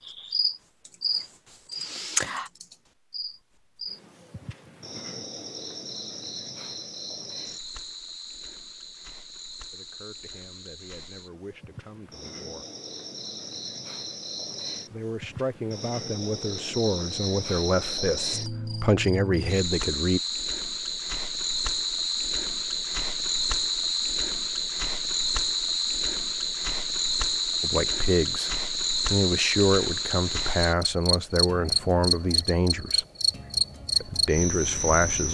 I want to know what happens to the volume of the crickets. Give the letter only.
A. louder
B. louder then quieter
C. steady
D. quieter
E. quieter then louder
E.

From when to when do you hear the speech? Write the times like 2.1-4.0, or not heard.
9.7-12.7, 14.8-20.2, 27.6-33.0, 34.0-35.2.